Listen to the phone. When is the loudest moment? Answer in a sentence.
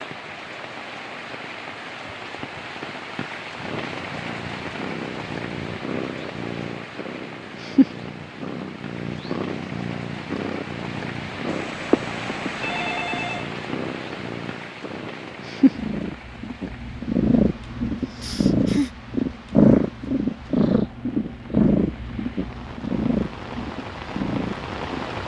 The volume of the phone peaks at 12 seconds.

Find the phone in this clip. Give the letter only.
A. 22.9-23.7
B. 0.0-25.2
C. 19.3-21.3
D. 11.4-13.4
D.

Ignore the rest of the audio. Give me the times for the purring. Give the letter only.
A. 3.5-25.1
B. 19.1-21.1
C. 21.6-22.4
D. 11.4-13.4
A.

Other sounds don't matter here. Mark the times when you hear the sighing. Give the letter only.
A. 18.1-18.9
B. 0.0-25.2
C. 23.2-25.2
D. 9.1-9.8
A.